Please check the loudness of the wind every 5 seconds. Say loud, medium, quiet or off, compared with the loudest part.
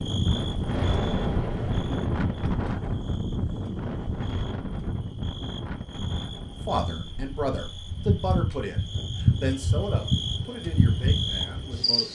loud, medium, quiet.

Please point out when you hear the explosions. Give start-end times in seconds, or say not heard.
0.7-2.5.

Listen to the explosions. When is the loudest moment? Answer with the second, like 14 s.
1 s.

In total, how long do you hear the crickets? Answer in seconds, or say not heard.
12 s.